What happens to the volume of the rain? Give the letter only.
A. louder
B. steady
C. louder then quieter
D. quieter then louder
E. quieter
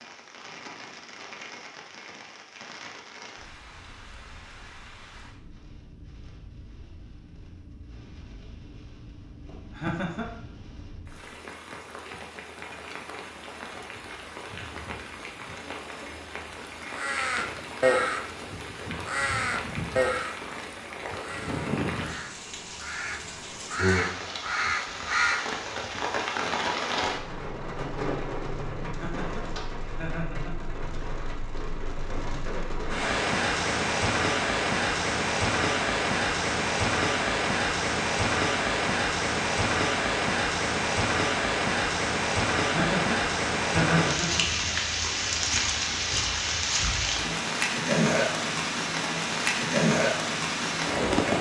A.